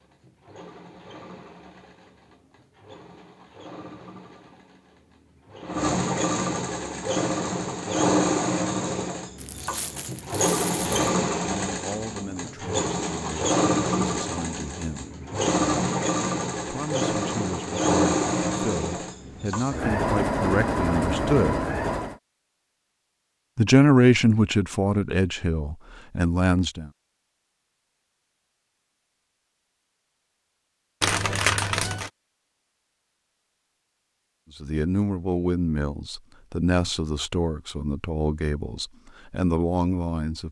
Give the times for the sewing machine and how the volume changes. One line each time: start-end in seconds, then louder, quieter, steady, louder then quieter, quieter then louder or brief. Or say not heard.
0.0-22.1 louder.